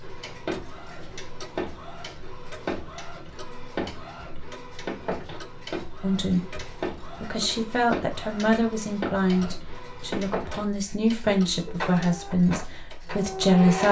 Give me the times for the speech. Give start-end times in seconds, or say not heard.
6.0-13.8.